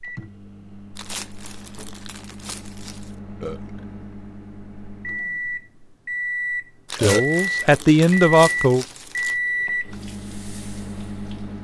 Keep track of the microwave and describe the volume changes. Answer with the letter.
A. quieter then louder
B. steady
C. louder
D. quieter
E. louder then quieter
C.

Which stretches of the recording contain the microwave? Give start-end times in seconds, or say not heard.
0.0-11.6.